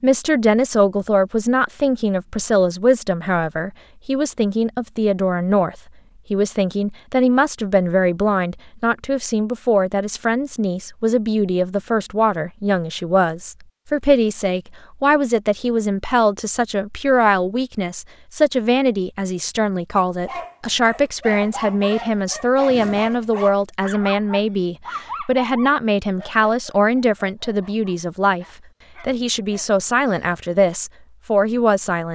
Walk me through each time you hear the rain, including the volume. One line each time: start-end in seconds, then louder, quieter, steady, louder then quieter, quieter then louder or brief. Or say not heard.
not heard.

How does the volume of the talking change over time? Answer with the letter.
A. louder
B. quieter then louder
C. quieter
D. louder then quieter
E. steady
E.